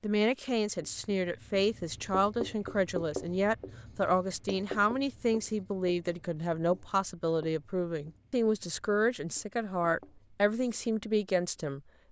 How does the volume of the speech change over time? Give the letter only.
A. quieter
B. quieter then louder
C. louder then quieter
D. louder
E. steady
E.